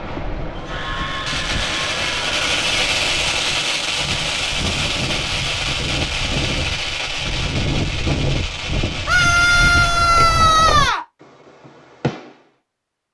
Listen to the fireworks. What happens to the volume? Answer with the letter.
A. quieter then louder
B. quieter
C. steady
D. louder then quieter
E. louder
B.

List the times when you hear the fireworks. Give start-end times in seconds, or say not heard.
0.7-12.4.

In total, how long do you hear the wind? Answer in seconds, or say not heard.
11 s.